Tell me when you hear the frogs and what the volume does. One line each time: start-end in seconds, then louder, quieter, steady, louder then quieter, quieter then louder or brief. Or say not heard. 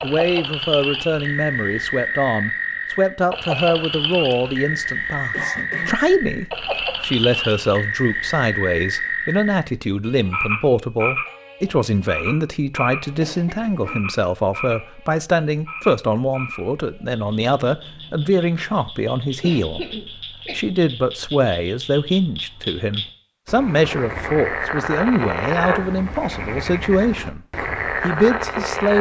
0.0-28.9 quieter then louder.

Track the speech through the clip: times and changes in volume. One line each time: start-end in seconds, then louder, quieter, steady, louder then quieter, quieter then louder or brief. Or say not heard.
0.0-28.9 steady.